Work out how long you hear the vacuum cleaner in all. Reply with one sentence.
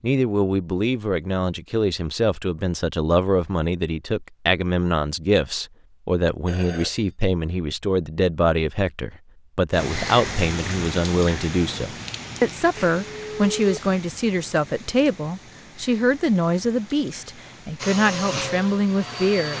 You can hear the vacuum cleaner for 2 seconds altogether.